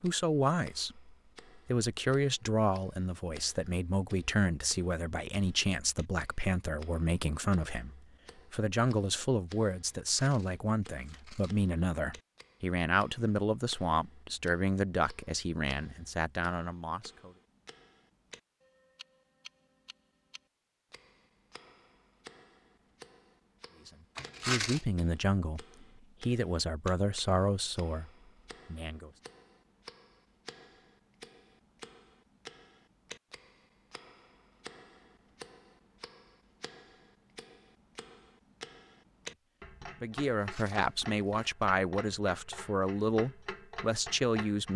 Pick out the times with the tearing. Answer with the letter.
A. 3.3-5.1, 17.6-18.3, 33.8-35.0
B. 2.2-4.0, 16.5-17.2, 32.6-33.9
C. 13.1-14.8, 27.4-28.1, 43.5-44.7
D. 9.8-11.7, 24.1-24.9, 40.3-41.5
D.